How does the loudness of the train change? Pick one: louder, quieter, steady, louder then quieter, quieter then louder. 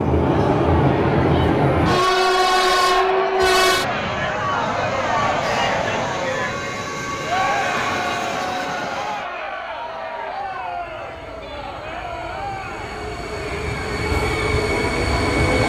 quieter then louder.